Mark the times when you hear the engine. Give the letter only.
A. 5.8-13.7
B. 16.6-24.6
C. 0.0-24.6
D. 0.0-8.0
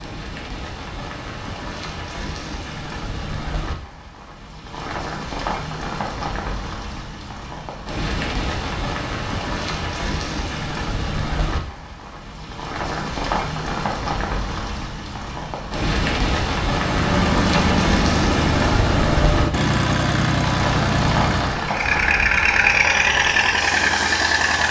B.